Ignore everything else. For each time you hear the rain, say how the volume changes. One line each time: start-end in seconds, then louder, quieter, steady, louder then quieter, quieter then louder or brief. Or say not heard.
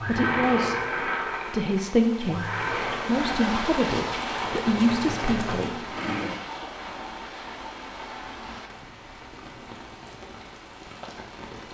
0.0-11.6 louder then quieter.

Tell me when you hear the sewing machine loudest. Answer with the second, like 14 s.
1 s.